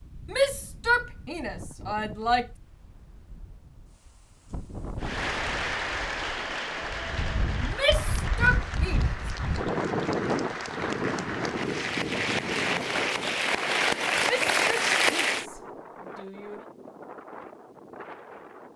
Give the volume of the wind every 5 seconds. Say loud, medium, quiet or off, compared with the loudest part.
quiet, loud, loud, medium.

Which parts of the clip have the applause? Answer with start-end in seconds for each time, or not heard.
5.0-15.4.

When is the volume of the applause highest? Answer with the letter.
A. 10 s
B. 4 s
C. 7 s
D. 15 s
D.